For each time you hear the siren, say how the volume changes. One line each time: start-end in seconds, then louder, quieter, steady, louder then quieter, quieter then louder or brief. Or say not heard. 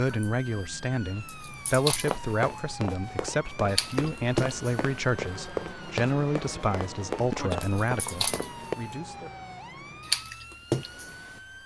0.0-11.6 quieter then louder.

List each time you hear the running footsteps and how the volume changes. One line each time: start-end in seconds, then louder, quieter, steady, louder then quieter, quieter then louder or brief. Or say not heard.
2.0-8.8 steady.